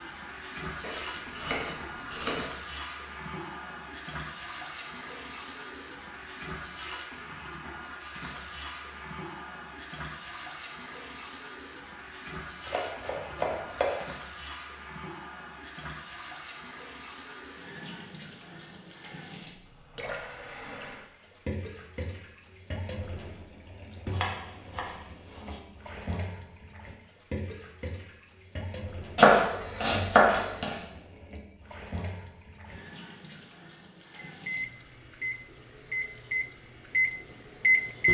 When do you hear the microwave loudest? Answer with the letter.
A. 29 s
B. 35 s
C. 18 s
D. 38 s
D.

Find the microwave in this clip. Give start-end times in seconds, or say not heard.
34.2-38.1.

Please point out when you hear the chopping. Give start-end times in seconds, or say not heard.
0.8-2.5, 12.7-14.1, 24.1-25.6, 29.1-30.8.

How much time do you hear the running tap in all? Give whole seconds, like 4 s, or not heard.
38 s.